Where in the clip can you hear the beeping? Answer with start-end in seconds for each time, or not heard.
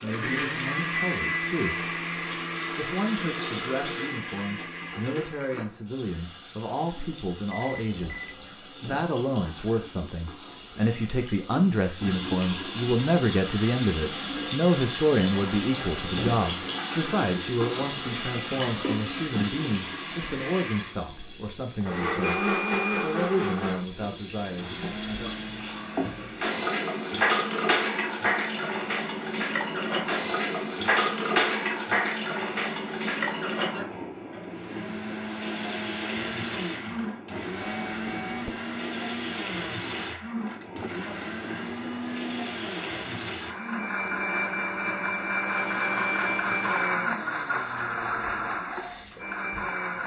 7.5-8.5, 21.8-23.1, 37.5-38.5.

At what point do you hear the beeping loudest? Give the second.
23 s.